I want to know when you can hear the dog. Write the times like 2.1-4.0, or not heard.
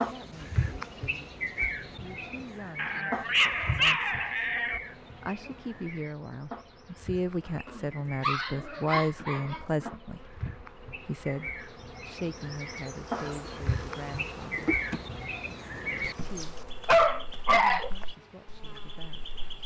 2.8-4.8, 7.7-9.9, 16.0-17.9.